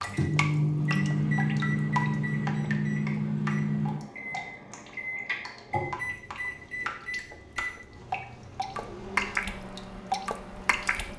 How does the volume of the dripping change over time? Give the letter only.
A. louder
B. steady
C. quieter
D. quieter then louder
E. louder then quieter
D.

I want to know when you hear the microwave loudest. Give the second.
1 s.